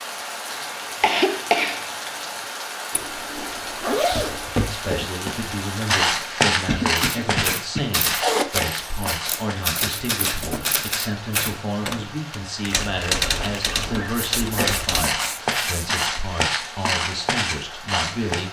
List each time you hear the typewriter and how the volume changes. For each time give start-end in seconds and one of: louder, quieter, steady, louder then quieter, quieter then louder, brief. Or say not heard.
7.0-15.1 steady.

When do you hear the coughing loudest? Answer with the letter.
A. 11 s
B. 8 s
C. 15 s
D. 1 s
D.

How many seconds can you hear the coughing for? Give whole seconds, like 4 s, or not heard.
4 s.